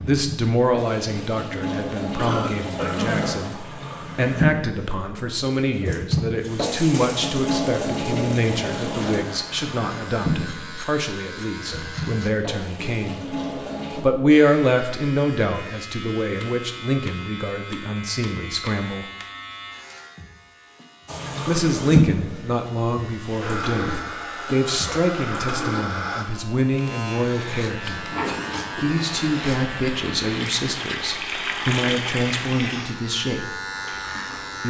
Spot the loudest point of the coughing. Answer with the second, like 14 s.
3 s.